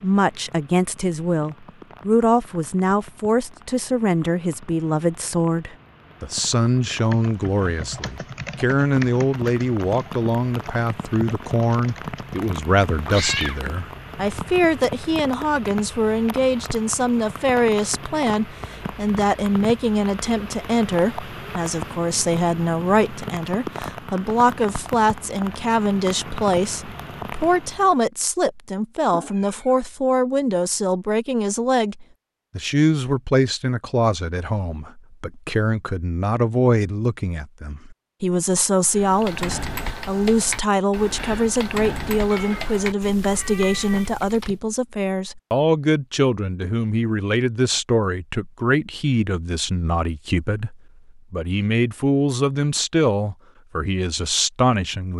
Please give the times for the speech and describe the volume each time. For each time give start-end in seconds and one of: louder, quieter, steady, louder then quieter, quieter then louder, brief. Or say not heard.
0.0-55.1 steady.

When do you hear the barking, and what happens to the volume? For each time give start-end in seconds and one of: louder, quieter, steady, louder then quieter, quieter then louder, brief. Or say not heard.
not heard.